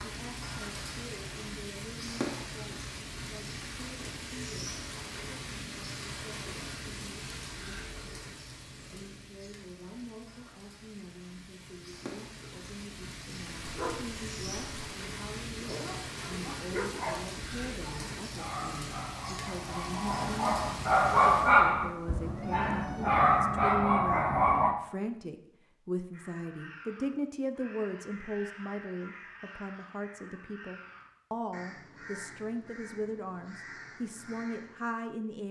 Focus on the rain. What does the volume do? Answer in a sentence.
The volume of the rain goes down, then up.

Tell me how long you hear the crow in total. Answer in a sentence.
You can hear the crow for 9 seconds altogether.